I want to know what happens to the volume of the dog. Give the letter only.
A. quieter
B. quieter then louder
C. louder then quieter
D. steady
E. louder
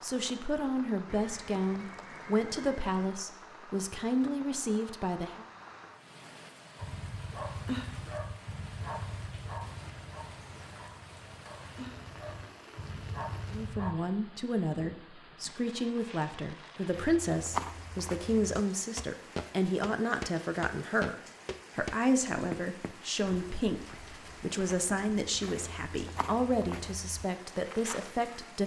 B.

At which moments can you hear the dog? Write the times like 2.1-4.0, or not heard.
6.8-13.9.